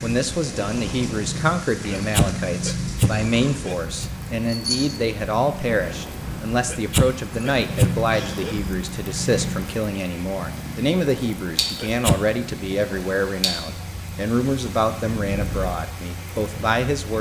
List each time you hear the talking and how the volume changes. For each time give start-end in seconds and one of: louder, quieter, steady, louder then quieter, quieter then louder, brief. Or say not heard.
0.0-17.1 steady.